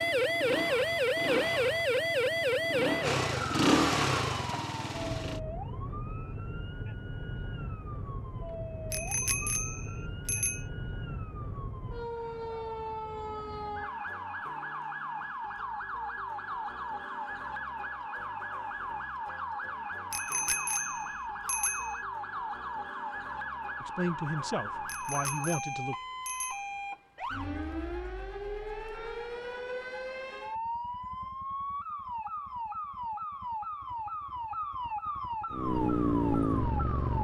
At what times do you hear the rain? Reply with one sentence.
You can't hear the rain here.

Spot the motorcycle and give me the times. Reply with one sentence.
You can hear the motorcycle from 0.0 to 5.4 s and from 35.5 to 37.1 s.